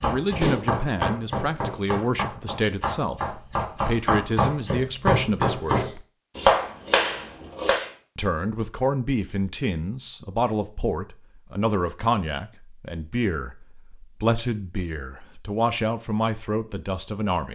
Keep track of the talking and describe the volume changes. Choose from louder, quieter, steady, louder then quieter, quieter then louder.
steady.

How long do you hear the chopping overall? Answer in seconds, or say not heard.
8 s.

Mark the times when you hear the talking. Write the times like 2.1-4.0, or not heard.
0.0-6.0, 8.2-17.4.